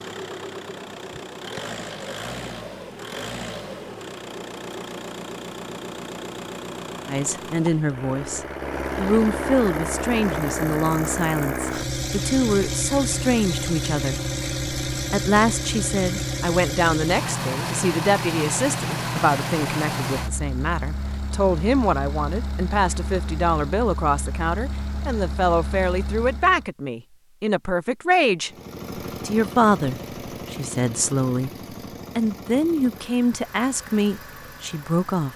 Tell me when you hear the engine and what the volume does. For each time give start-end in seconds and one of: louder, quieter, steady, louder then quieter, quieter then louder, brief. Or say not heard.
0.0-26.7 louder then quieter
28.4-35.3 quieter.